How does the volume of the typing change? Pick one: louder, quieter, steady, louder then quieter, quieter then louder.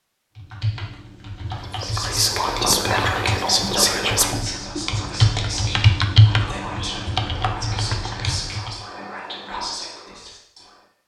louder then quieter.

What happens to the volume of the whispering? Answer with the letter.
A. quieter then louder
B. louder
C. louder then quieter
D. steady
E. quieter
E.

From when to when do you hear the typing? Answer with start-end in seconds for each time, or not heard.
0.3-8.8.